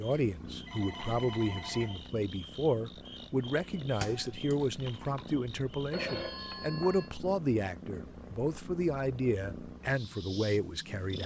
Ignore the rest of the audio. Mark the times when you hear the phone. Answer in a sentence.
You can hear the phone from 0.7 to 2.0 s and from 5.9 to 7.1 s.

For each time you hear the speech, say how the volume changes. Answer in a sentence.
You can hear the speech from 0.0 to 11.2 s, at a steady volume.